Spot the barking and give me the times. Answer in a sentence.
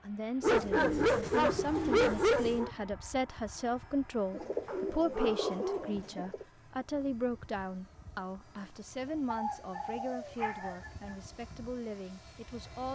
The barking can be heard from 0.4 to 2.7 s, from 4.7 to 5.8 s and from 9.3 to 11.2 s.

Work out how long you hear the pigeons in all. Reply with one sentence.
The pigeons can be heard for 6 seconds in total.